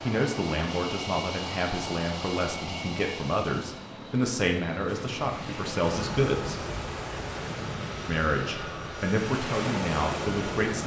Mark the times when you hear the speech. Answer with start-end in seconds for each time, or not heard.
0.0-6.6, 8.1-10.8.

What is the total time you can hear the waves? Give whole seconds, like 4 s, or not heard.
6 s.